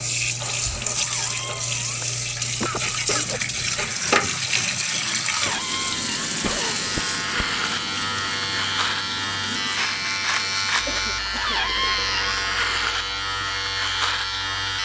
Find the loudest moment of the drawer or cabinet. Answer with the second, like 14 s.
12 s.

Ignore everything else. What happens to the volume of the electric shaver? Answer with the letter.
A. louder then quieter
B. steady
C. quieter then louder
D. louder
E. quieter
D.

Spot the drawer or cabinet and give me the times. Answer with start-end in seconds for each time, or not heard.
0.9-2.0, 5.3-6.1, 11.3-12.4.